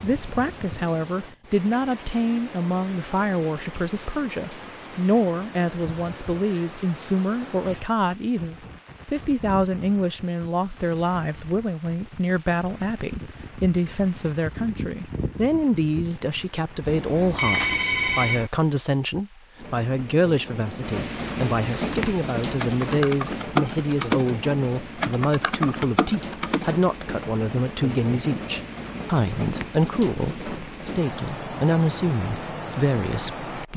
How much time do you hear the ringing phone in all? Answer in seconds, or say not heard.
2 s.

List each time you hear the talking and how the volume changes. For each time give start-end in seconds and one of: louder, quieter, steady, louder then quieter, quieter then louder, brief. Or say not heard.
0.0-33.7 steady.